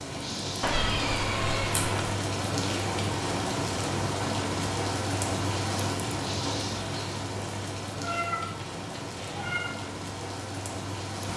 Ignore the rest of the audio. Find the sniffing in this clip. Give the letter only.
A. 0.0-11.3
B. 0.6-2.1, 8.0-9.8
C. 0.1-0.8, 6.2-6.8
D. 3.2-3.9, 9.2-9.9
C.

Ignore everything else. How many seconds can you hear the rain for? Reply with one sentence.
You can hear the rain for 11 seconds altogether.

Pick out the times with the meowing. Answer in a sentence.
The meowing can be heard from 0.6 to 2.1 s and from 8.0 to 9.8 s.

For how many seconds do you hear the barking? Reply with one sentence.
You can't hear the barking here.